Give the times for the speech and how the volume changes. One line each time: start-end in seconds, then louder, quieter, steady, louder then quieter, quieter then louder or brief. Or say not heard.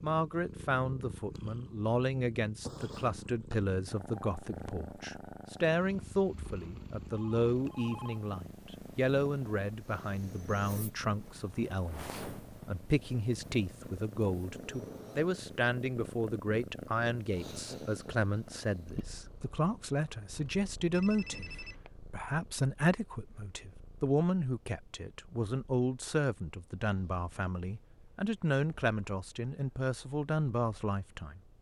0.0-31.4 steady.